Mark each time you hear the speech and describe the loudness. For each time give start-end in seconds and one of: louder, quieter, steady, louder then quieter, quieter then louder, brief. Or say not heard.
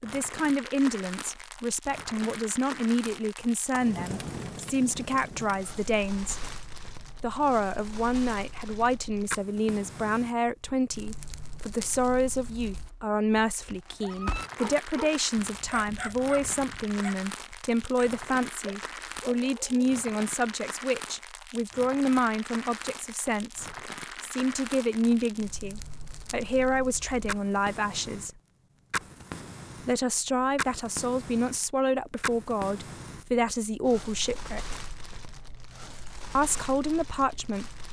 0.0-6.5 steady
7.2-28.3 steady
29.9-34.8 steady
36.4-37.7 brief.